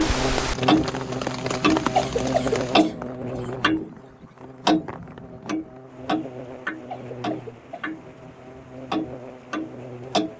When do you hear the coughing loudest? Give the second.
2 s.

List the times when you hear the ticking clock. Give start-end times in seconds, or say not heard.
0.0-4.0, 4.7-10.3.